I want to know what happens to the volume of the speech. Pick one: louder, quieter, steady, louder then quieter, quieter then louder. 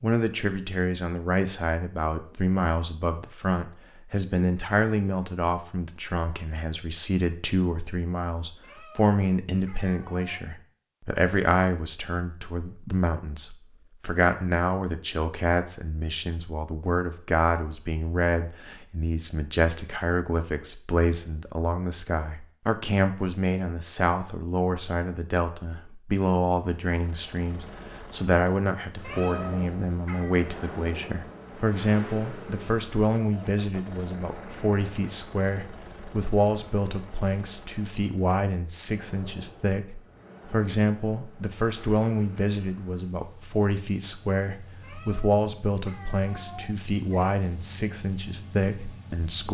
steady.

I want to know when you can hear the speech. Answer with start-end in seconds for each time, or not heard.
0.0-49.4.